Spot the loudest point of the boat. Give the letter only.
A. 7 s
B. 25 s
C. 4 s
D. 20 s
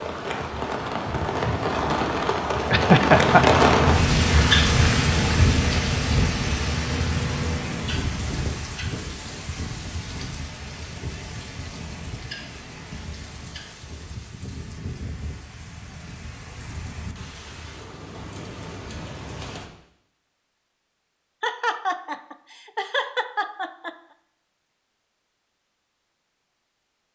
C.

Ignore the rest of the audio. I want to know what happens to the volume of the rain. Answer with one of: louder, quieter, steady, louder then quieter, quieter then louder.
quieter.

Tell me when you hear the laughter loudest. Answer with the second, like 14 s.
3 s.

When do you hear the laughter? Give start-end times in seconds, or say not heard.
2.7-3.6, 21.4-23.9.